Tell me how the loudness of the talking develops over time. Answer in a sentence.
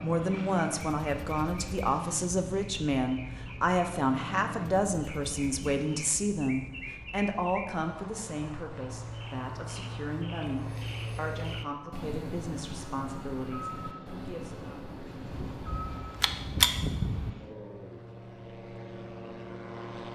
The loudness of the talking goes down.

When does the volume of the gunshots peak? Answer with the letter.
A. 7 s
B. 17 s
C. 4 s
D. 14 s
B.